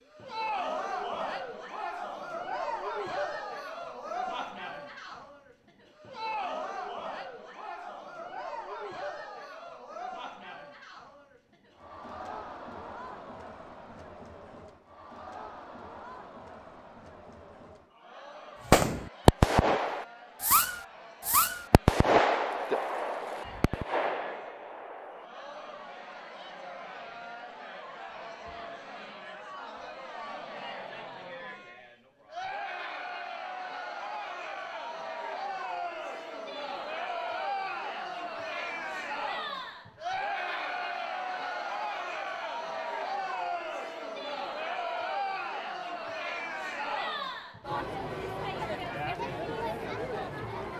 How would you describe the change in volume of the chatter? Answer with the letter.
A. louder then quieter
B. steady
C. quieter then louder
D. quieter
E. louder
C.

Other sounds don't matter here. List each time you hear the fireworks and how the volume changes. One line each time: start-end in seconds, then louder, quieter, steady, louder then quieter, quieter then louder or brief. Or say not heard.
18.7-25.2 quieter.